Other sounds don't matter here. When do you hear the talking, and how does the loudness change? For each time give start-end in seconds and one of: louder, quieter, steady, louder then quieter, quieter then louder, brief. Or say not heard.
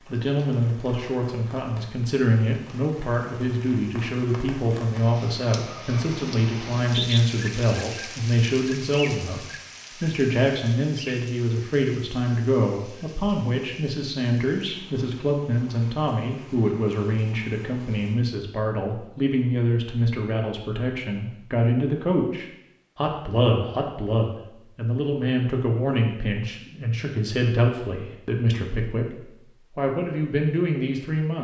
0.1-31.3 steady.